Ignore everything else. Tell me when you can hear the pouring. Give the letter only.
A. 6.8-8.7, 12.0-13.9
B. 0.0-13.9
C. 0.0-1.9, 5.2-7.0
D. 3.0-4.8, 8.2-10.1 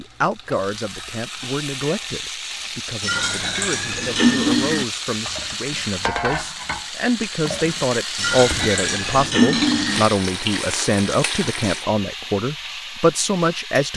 D.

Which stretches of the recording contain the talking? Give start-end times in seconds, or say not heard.
0.0-13.9.